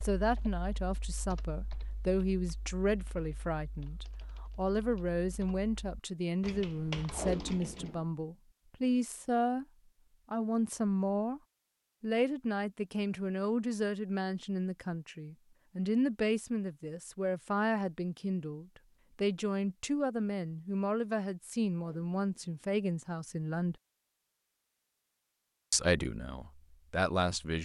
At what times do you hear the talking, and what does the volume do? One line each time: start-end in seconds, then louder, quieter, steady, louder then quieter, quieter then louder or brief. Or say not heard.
0.0-9.7 steady
10.3-11.4 brief
12.0-23.8 steady
25.7-27.5 brief.